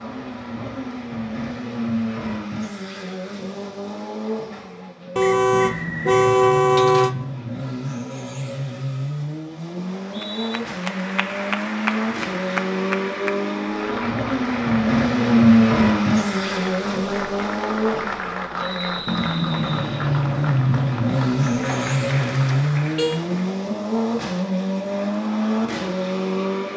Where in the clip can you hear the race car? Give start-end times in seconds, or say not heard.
0.0-26.7.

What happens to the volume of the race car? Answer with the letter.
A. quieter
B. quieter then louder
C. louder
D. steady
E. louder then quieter
C.